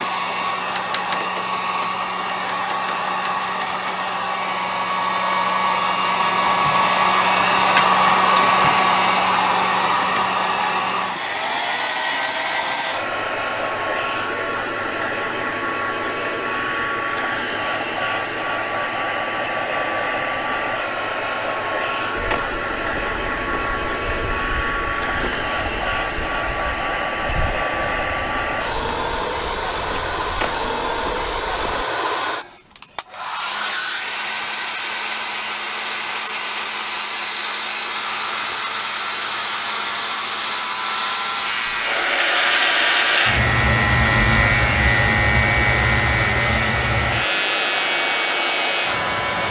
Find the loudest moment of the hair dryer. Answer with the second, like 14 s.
8 s.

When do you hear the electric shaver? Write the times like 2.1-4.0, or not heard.
37.9-49.4.